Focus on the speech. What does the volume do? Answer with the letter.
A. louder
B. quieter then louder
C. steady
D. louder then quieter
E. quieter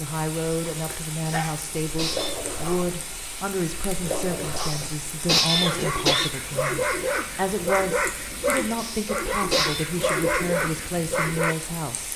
C.